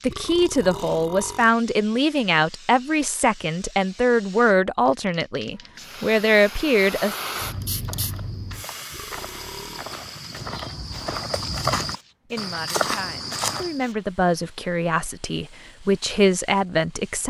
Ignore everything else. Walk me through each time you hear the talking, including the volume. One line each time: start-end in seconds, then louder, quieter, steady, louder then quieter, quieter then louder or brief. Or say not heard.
0.0-7.2 steady
12.3-17.2 louder.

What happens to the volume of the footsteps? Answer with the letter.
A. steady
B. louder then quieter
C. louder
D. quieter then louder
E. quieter
C.